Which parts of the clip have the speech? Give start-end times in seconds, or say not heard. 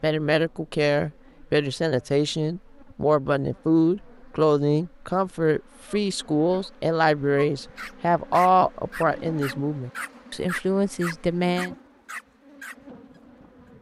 0.0-11.8.